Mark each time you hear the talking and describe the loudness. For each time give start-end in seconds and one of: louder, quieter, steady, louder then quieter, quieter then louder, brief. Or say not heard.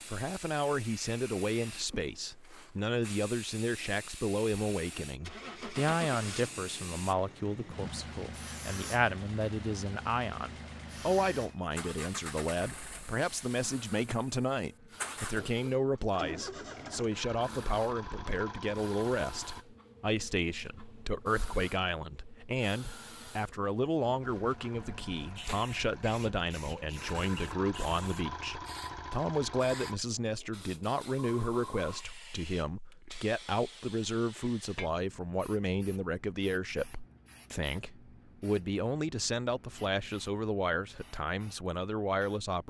0.1-42.6 steady.